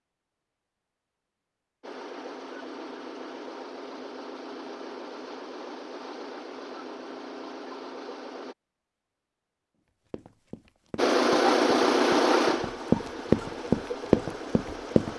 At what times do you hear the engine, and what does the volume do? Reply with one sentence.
The engine can be heard from 1.8 to 8.6 s, at a steady volume; and from 10.9 to 15.1 s, getting quieter.